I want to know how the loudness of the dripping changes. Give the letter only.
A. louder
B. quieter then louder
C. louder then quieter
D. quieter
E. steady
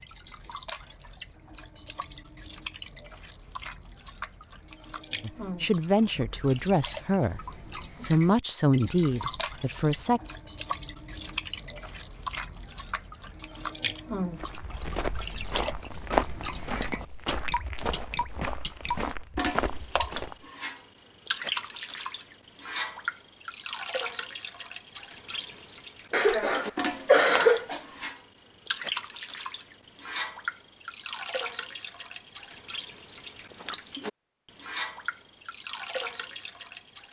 A.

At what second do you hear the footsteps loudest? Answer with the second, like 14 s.
16 s.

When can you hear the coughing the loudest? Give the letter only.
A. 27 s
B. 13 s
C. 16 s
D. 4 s
A.